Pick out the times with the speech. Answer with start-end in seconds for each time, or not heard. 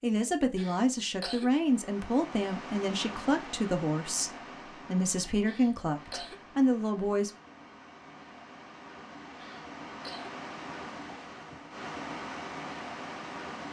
0.0-7.3.